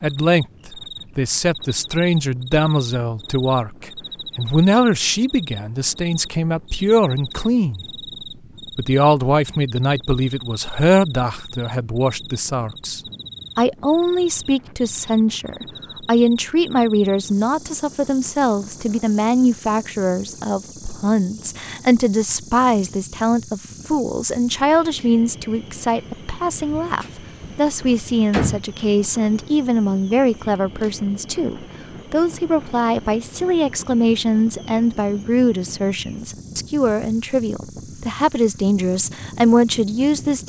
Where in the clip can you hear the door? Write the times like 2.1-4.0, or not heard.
26.6-28.6.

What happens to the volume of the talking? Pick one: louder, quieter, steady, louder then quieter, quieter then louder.
steady.